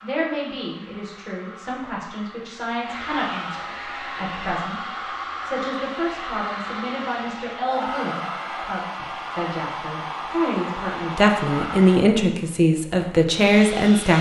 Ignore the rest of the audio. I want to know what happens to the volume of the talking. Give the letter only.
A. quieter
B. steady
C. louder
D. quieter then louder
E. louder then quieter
C.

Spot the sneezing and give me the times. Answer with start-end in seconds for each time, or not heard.
not heard.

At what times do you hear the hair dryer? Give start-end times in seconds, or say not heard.
0.0-14.1.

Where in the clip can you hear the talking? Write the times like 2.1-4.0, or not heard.
0.0-14.1.